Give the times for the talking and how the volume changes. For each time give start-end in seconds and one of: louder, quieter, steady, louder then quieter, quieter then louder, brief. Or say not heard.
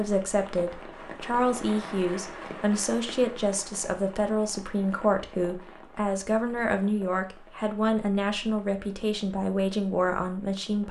0.0-10.8 steady.